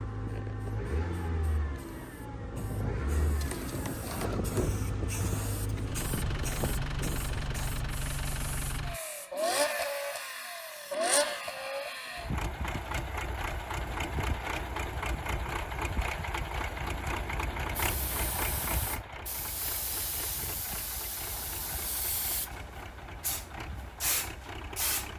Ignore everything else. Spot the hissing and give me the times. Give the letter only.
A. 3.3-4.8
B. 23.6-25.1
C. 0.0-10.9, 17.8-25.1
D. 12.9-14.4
C.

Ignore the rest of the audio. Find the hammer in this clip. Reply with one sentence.
The hammer can be heard from 3.3 to 4.8 s.